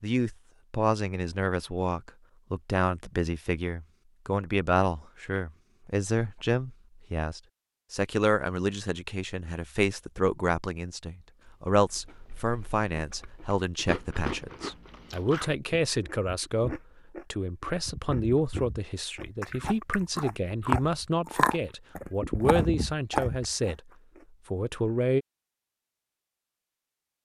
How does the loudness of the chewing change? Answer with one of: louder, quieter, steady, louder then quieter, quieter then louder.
louder.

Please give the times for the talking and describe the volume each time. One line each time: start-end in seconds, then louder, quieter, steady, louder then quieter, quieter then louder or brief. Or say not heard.
0.0-23.8 steady
24.5-25.2 brief.